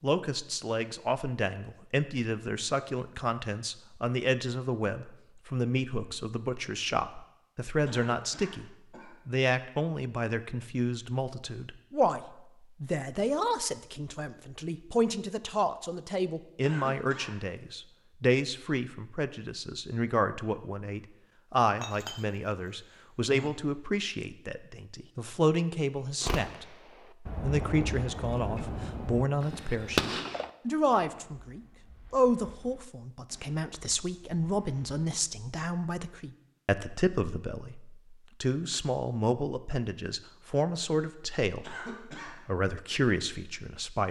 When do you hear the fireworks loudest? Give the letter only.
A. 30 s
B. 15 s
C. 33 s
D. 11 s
A.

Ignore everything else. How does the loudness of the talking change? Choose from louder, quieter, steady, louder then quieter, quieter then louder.
steady.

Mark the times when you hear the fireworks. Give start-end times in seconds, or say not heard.
26.2-35.0.